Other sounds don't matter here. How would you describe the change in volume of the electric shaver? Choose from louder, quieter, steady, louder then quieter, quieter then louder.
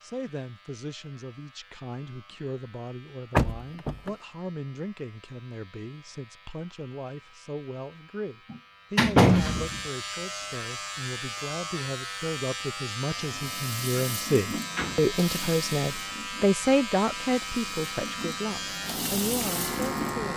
louder.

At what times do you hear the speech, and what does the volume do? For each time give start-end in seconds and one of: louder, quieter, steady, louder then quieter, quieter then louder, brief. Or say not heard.
0.0-20.3 louder.